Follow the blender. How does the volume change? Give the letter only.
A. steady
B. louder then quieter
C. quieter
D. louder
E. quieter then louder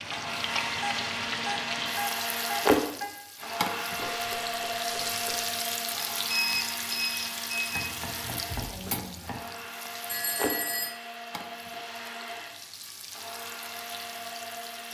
C.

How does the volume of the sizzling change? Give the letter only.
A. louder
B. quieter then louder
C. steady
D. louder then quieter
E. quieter
E.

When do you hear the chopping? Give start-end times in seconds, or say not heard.
4.0-5.5, 7.7-9.4.